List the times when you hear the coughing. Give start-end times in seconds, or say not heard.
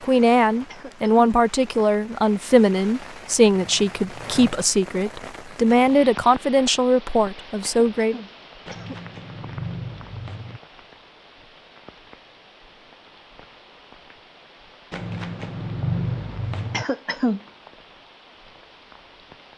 0.7-1.3, 7.6-9.0, 16.7-17.4.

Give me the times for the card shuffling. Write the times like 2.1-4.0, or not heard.
3.5-4.5, 8.7-10.6, 14.9-16.9.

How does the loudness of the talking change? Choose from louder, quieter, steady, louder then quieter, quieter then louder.
steady.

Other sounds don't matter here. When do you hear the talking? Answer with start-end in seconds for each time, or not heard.
0.0-8.2.